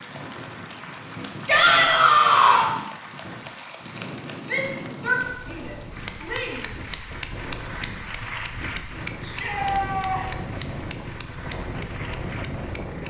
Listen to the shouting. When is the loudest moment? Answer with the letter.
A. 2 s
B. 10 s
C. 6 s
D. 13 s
A.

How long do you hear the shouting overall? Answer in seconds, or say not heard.
5 s.